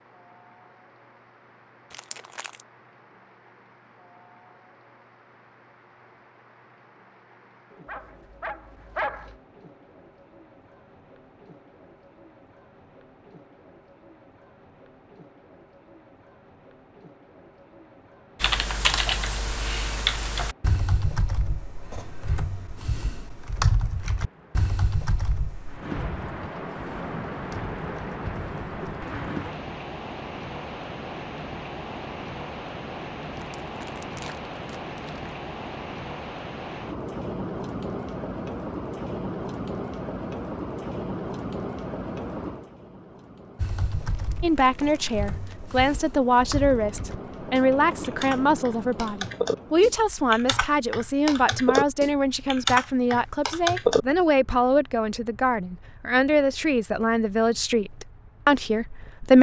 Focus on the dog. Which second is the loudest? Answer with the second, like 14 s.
9 s.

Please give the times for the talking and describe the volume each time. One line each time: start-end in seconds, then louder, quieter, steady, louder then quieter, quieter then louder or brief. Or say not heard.
44.4-59.3 steady.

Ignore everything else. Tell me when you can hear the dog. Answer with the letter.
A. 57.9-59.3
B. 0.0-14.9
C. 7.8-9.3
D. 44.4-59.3
C.